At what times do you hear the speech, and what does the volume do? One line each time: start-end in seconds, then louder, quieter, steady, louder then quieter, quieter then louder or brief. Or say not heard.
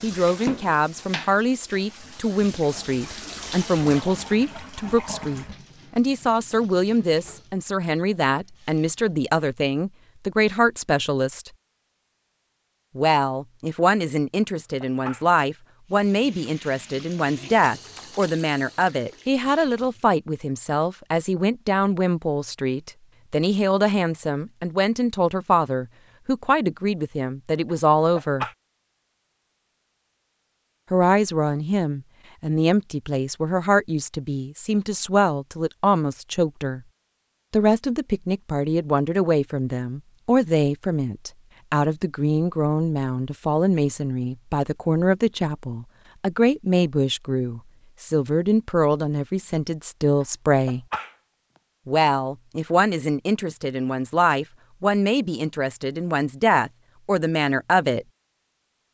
0.0-11.5 steady
12.9-28.4 steady
30.9-36.8 steady
37.5-50.9 steady
51.9-58.0 steady.